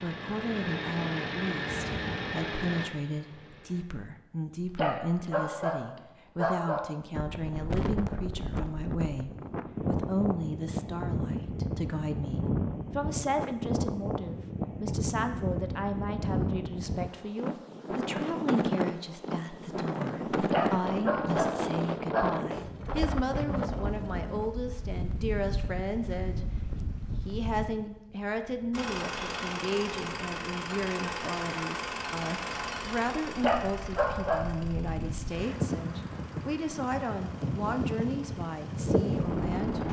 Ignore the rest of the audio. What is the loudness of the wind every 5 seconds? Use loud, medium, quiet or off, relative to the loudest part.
off, loud, loud, loud, loud, medium, medium, loud.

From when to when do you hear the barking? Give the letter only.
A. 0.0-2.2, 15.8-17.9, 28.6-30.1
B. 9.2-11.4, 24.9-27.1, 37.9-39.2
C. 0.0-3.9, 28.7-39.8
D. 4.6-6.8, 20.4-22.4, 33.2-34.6
D.